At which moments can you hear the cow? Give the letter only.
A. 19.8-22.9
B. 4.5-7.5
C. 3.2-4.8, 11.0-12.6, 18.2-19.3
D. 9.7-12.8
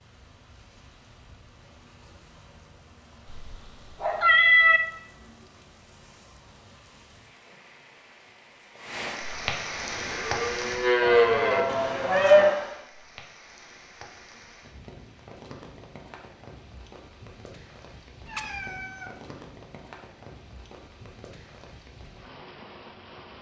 D.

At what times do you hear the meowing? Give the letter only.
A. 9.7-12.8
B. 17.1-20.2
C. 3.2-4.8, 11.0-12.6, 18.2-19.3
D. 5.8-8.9
C.